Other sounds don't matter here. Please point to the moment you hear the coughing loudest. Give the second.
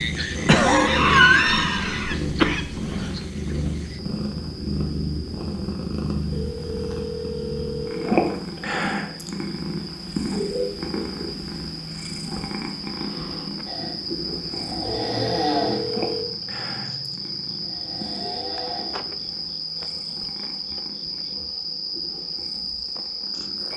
1 s.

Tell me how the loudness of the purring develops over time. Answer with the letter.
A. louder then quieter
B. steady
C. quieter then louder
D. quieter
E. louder
D.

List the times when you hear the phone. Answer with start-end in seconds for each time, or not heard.
6.3-8.6, 14.8-16.2.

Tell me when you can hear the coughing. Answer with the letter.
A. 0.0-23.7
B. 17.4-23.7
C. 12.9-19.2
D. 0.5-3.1
D.